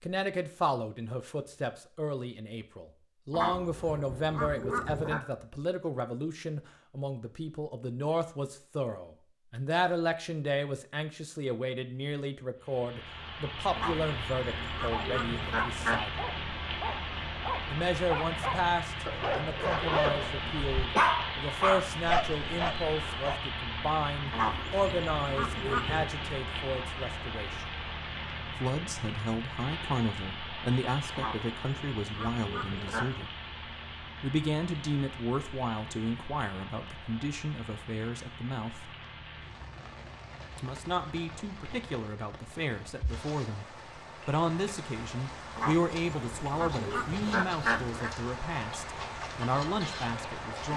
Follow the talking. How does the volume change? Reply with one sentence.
The volume of the talking stays about the same.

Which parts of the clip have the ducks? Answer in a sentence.
The ducks can be heard from 3.3 to 5.2 s, from 13.8 to 16.0 s, from 24.3 to 26.1 s, from 31.1 to 33.3 s and from 45.5 to 48.1 s.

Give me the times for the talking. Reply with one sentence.
You can hear the talking from 0.0 to 16.2 s, from 17.6 to 27.7 s, from 28.5 to 33.3 s, from 34.2 to 38.9 s and from 40.5 to 50.7 s.